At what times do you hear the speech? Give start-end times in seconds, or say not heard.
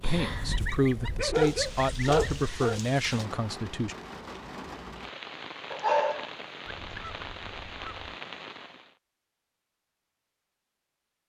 0.0-4.0.